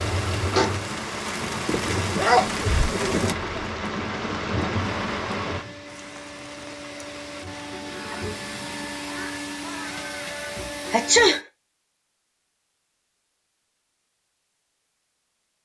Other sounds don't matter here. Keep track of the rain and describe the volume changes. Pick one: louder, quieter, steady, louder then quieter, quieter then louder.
quieter.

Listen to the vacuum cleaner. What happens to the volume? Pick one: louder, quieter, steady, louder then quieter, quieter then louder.
louder.